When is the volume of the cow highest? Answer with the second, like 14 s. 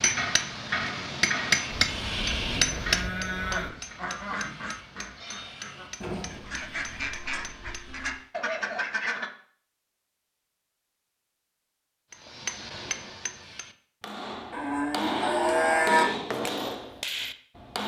16 s.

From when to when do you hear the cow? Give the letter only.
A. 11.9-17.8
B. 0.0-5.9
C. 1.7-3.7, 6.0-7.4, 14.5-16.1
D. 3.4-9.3
C.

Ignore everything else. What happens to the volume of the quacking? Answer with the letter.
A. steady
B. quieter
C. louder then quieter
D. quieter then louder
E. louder
D.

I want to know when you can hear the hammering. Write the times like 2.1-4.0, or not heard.
0.0-8.3, 12.1-17.8.